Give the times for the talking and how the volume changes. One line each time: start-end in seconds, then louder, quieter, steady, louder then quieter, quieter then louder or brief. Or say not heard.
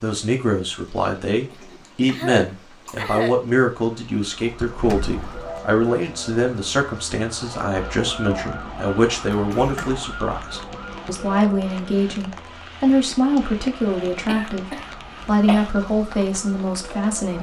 0.0-17.3 steady.